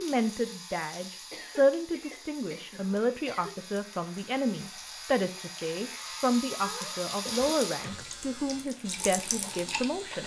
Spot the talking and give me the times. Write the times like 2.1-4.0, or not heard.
0.0-10.2.